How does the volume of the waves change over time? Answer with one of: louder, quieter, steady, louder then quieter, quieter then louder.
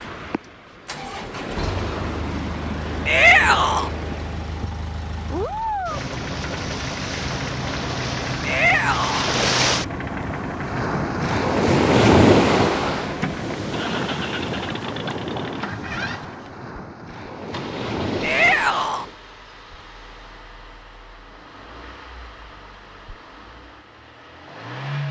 louder then quieter.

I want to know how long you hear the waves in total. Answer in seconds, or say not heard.
19 s.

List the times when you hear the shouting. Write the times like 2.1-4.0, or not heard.
3.0-3.9, 8.4-9.3, 18.2-19.1.